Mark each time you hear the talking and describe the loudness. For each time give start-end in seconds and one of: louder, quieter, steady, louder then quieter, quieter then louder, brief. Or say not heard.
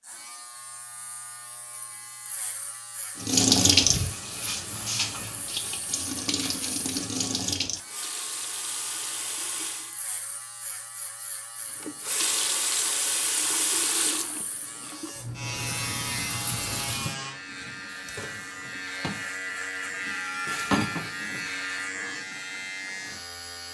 not heard.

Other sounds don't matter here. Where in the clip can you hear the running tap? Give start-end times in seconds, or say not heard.
3.1-9.9, 11.8-21.6.